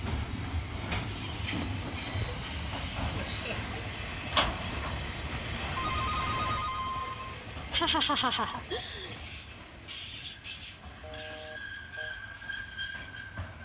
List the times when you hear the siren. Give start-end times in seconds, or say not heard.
not heard.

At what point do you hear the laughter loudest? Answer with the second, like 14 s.
8 s.